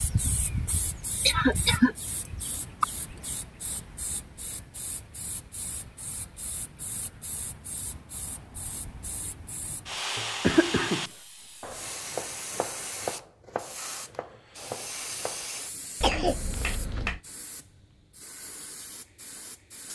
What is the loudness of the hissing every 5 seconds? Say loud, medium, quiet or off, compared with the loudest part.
loud, medium, loud, medium.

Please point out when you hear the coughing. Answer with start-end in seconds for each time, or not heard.
1.2-2.9, 10.2-11.1, 16.0-17.2.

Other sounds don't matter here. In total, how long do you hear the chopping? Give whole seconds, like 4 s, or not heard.
5 s.